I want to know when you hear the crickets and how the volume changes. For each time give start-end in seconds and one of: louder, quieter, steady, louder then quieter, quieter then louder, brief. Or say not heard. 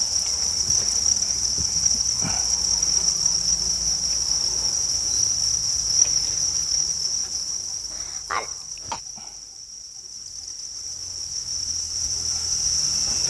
0.0-13.2 quieter then louder.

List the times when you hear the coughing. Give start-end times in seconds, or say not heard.
7.9-9.0.